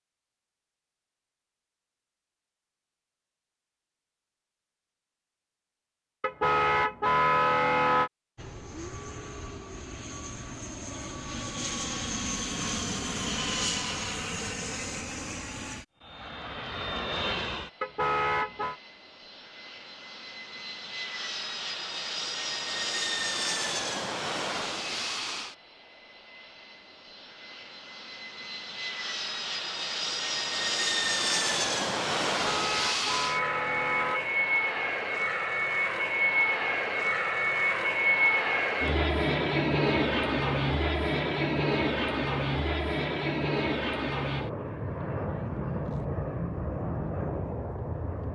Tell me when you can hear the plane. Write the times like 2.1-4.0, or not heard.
8.3-48.3.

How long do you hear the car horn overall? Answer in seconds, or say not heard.
5 s.